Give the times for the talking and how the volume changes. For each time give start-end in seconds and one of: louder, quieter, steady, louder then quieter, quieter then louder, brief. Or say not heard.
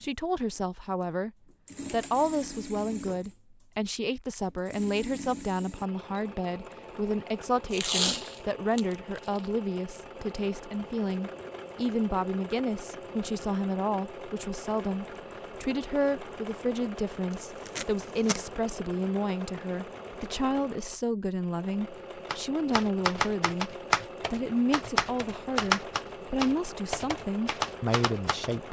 0.0-1.3 brief
1.9-28.6 steady.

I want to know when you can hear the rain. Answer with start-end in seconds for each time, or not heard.
not heard.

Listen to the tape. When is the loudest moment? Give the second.
8 s.